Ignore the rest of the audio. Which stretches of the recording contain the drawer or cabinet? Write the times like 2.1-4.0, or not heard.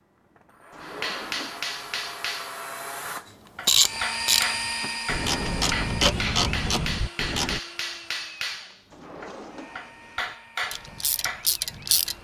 0.7-2.2, 5.3-5.8, 8.9-10.3.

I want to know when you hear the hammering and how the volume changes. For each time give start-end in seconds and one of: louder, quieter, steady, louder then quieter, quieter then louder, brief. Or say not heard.
0.8-11.5 steady.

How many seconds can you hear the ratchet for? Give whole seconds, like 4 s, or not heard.
5 s.